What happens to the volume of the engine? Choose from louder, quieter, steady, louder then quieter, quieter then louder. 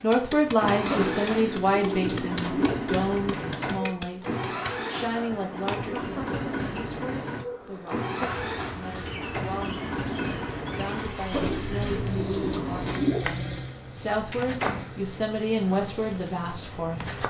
quieter.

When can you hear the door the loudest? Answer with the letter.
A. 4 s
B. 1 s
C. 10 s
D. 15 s
D.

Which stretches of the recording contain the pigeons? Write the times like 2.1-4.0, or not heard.
0.9-2.8, 11.3-13.3.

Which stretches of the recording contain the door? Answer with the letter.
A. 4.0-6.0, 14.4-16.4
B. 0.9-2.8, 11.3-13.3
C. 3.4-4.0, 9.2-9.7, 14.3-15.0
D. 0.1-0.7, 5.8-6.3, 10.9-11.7
C.